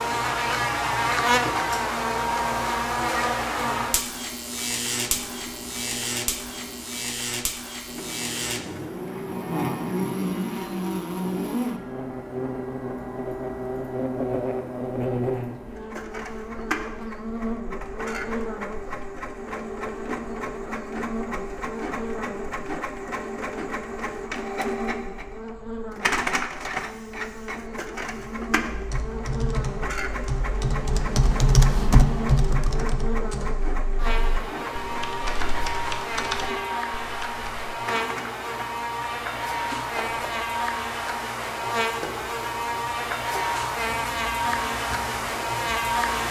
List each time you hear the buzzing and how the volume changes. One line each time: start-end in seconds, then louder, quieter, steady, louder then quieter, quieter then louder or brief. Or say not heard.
0.0-46.2 quieter then louder.